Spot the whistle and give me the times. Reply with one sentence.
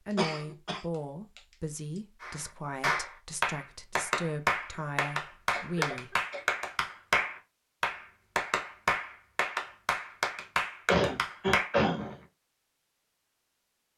You can't hear the whistle here.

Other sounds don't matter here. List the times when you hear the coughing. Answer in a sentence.
The coughing can be heard from 0.1 to 1.4 s, from 5.5 to 6.5 s and from 10.8 to 12.2 s.